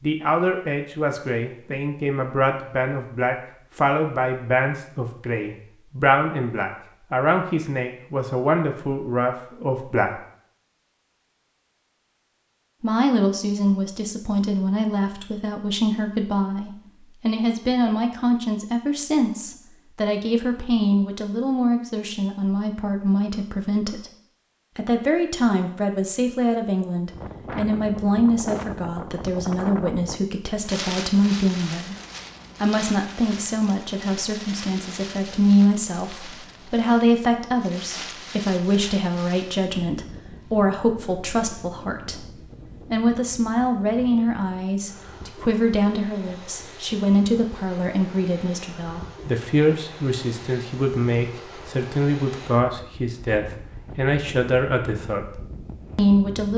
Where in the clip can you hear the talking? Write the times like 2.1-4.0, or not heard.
0.0-10.2, 12.8-24.1, 24.8-31.9, 32.6-56.5.